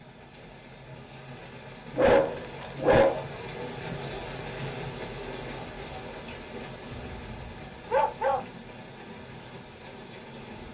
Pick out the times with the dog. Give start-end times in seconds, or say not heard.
1.9-3.2, 6.9-8.4.